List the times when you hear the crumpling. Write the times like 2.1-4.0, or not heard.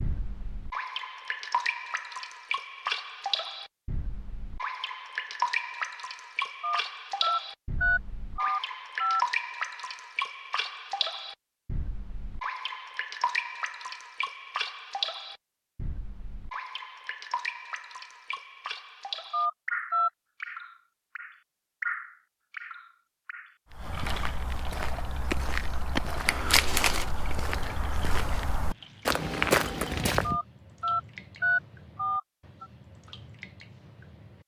26.2-27.1.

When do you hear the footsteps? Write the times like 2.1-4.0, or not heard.
23.7-30.4.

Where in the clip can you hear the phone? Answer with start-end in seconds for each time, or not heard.
6.6-9.2, 19.3-20.1, 30.2-32.6.